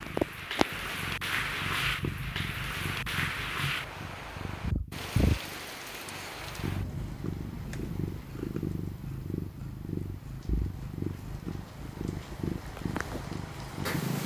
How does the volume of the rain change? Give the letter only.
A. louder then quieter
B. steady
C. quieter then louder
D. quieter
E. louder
C.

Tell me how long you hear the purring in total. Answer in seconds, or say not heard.
14 s.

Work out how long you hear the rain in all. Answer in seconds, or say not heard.
14 s.